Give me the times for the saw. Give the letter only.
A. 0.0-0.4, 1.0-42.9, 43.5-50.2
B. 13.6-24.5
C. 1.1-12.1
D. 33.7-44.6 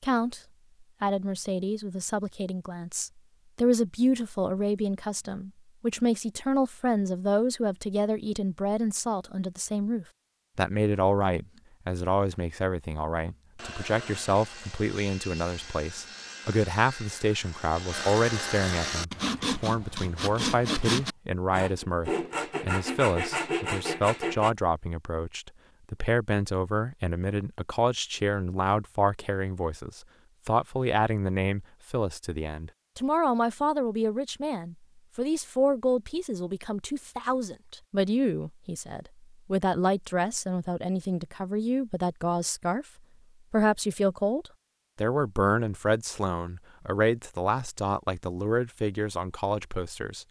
B.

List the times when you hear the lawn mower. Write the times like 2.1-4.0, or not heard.
not heard.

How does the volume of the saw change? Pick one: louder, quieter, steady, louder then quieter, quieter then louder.
louder.